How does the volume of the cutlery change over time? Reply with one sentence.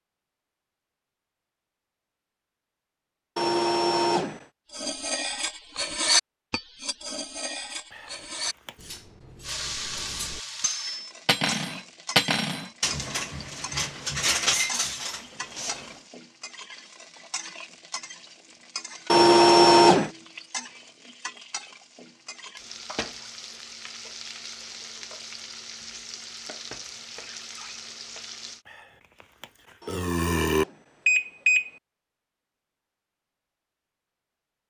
The volume of the cutlery goes down, then up.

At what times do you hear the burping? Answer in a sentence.
The burping can be heard from 7.9 to 9.0 s and from 28.6 to 30.6 s.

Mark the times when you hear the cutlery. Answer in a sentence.
The cutlery can be heard from 4.7 to 15.8 s.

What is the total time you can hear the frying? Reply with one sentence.
The frying can be heard for 19 seconds in total.